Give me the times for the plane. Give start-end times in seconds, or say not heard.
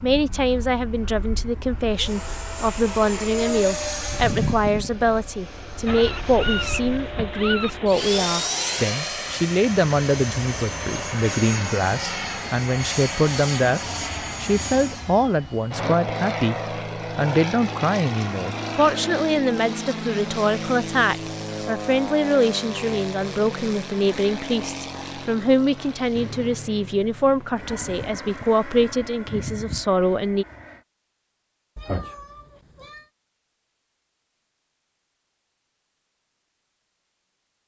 0.0-30.9.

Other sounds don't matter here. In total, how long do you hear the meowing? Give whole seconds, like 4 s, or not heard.
3 s.